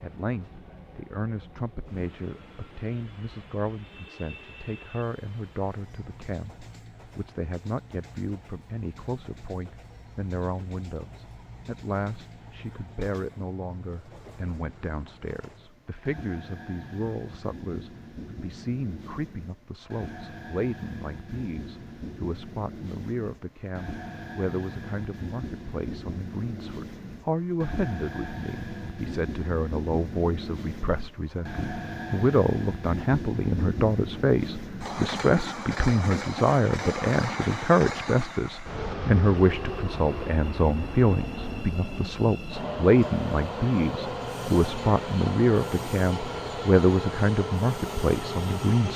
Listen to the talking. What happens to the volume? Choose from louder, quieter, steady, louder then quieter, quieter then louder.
louder.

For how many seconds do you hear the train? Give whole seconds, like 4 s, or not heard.
49 s.